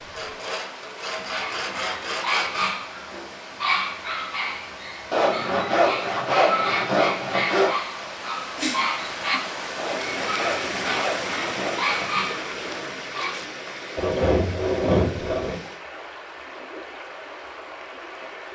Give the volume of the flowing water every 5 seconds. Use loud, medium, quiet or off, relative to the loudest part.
medium, loud, loud, medium.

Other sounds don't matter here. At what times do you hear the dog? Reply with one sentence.
The dog can be heard from 1.1 to 13.4 s.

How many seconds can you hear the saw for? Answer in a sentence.
You can hear the saw for 9 seconds altogether.